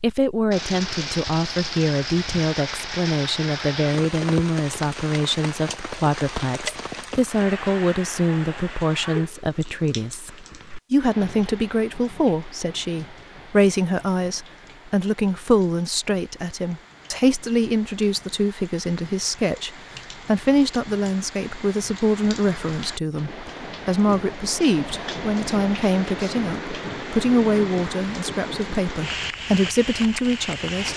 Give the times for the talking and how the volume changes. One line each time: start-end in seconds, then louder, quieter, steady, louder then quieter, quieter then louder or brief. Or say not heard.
0.0-30.9 steady.